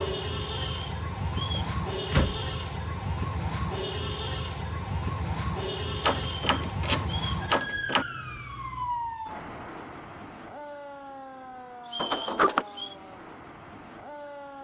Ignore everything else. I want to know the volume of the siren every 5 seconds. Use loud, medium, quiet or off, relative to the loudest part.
loud, loud, medium.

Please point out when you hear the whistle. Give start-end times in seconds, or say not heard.
0.5-1.8, 6.2-7.5, 11.8-12.9.